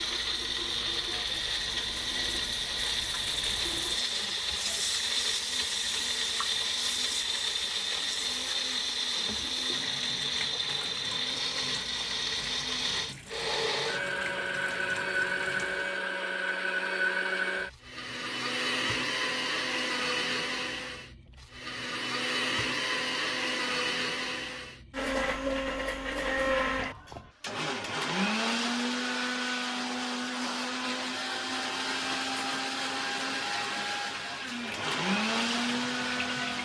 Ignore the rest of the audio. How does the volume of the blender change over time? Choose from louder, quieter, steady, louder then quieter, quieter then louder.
steady.